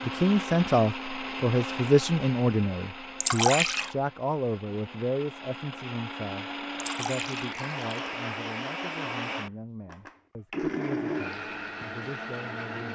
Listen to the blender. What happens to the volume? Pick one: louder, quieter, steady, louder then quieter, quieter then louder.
quieter then louder.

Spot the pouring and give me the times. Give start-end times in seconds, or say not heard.
3.2-4.0, 6.8-8.1.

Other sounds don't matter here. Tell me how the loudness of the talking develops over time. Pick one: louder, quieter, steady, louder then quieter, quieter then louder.
quieter.